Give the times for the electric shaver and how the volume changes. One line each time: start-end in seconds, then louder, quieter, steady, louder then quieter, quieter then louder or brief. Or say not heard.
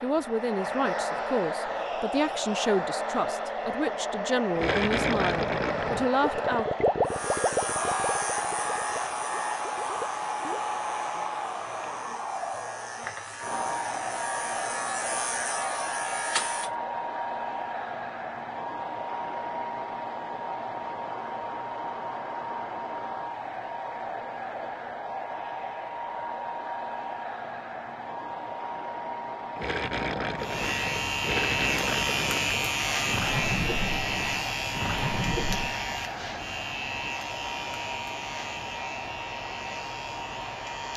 7.0-16.7 quieter then louder
30.4-40.9 quieter.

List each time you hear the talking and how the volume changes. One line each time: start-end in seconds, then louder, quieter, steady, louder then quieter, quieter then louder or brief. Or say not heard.
0.0-6.7 steady.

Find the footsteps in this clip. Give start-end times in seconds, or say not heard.
not heard.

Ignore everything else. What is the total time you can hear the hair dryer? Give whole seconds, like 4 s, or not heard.
41 s.